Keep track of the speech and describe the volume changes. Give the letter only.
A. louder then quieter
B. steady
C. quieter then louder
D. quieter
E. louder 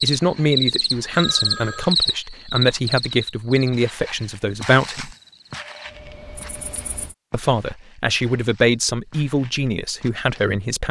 B.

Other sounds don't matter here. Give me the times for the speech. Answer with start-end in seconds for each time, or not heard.
0.0-5.2, 7.3-10.8.